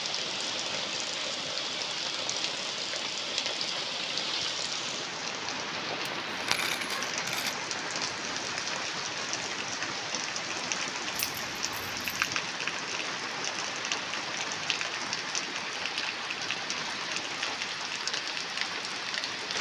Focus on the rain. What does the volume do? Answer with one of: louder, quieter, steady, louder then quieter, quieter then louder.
steady.